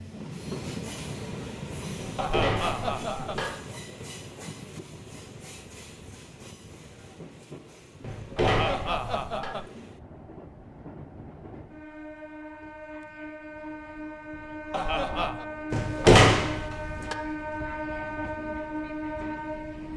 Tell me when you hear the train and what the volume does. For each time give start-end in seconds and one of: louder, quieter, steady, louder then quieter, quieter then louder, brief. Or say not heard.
0.0-19.9 quieter then louder.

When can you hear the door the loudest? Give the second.
16 s.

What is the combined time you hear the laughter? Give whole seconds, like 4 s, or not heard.
3 s.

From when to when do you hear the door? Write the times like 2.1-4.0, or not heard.
1.9-3.5, 8.0-9.5, 15.7-17.1.